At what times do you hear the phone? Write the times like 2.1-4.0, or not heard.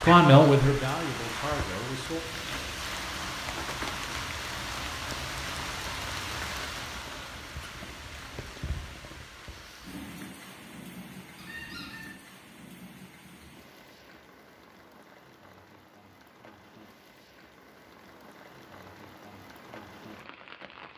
not heard.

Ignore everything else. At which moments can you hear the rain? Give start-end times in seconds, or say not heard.
0.0-20.9.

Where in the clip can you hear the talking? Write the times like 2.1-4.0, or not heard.
0.0-2.2.